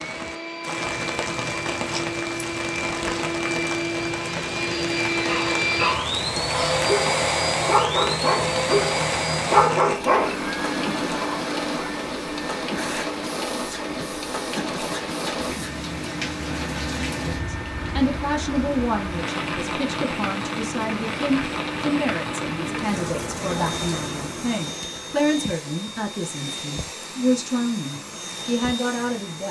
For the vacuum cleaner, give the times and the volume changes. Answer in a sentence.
You can hear the vacuum cleaner from 0.0 to 29.4 s, getting quieter.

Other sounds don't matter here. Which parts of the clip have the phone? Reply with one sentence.
The phone can't be heard in this clip.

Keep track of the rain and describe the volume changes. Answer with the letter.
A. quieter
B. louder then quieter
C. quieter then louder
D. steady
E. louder
D.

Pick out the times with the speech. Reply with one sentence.
The speech can be heard from 17.4 to 29.4 s.